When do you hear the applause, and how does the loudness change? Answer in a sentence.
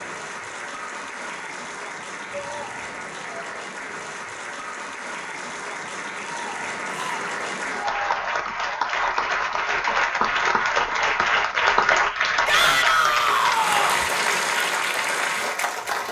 The applause can be heard from 0.0 to 16.0 s, getting louder.